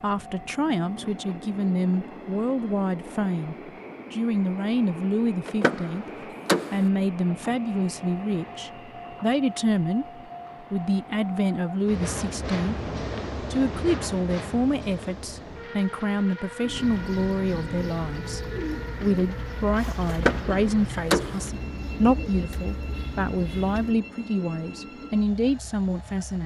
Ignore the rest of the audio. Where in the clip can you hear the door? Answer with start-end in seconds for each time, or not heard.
5.5-6.9, 20.1-21.5.